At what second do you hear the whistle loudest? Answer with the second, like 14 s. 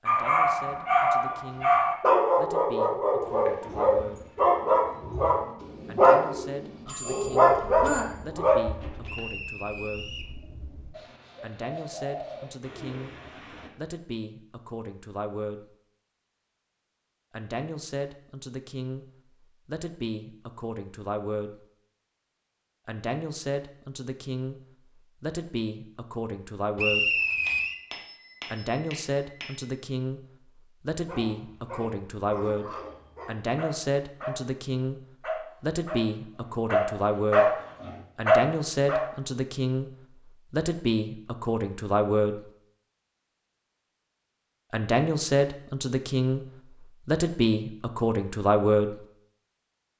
27 s.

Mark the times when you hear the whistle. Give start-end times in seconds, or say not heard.
9.1-10.3, 26.8-27.8.